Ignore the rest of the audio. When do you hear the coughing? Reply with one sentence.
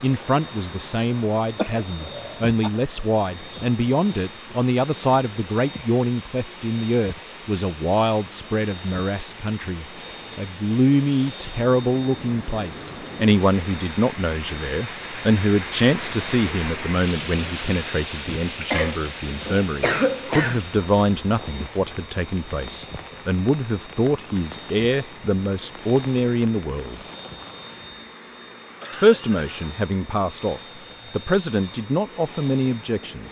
You can hear the coughing from 1.6 to 2.7 s, from 18.7 to 20.6 s and from 28.8 to 29.4 s.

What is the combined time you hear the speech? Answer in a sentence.
You can hear the speech for 31 seconds altogether.